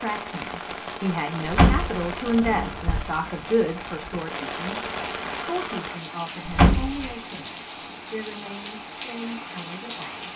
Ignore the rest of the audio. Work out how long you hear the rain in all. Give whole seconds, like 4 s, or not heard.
10 s.